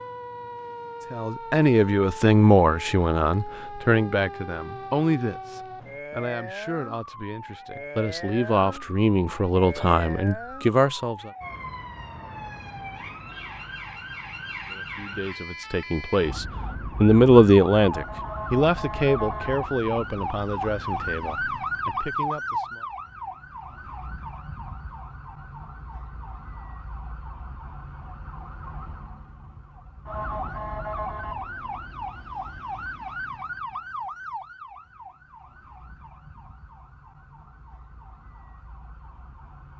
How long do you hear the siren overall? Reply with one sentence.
The siren can be heard for 40 seconds in total.